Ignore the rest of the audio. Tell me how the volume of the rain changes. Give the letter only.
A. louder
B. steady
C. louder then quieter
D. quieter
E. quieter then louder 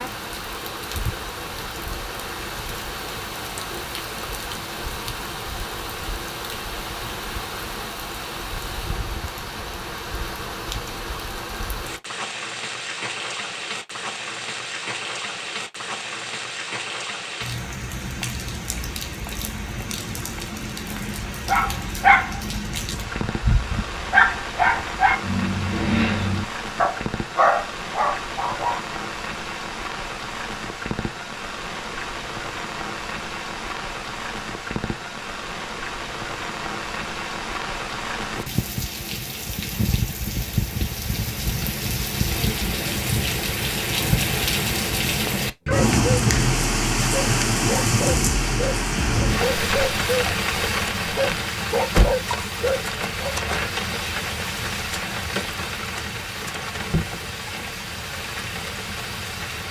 A.